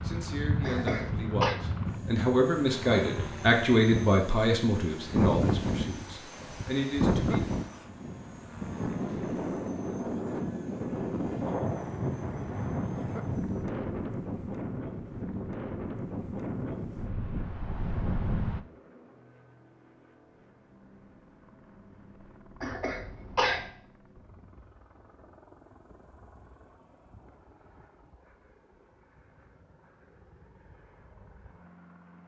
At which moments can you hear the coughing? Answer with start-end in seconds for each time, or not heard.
0.6-1.6, 22.6-23.7.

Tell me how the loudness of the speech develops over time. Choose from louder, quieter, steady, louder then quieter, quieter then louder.
louder then quieter.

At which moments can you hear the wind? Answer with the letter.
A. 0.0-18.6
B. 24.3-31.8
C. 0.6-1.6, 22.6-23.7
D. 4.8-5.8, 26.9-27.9
A.